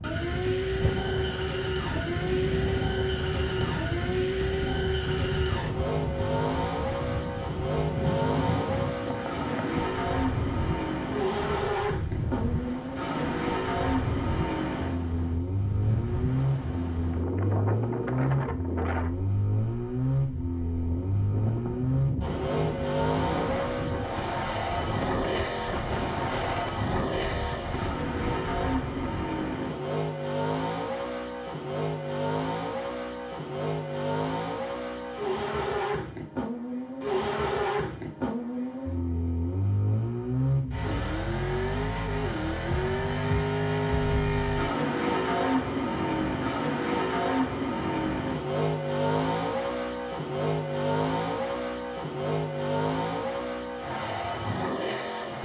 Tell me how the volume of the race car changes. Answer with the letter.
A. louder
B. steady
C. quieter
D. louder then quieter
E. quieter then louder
B.